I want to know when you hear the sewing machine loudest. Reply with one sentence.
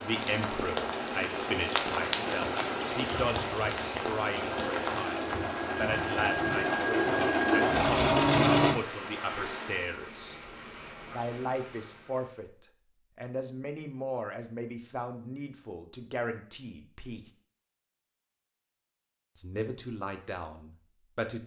The loudest moment of the sewing machine is at 8 seconds.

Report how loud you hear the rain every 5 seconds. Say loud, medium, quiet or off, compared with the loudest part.
loud, medium, quiet, off, off.